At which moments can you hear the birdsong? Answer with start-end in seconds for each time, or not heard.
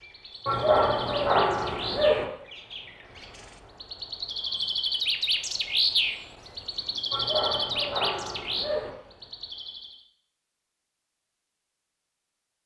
0.0-10.1.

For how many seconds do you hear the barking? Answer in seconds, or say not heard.
4 s.